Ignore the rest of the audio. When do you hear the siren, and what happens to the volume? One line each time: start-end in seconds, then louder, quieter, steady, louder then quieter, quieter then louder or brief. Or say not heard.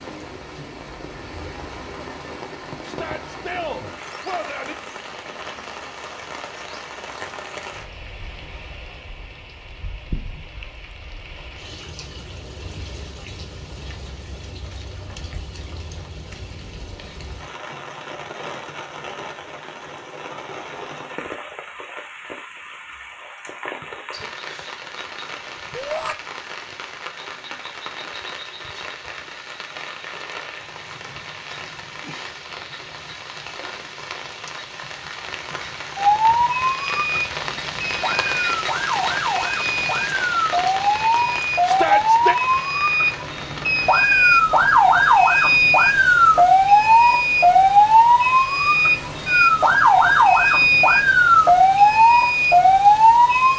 36.0-53.5 louder.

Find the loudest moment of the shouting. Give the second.
42 s.